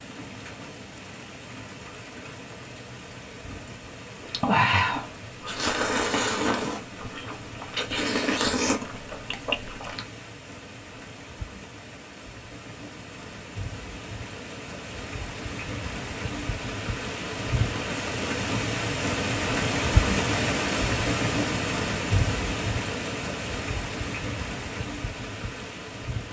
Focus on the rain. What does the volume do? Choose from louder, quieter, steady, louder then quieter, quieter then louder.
louder.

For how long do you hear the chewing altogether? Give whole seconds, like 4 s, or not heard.
6 s.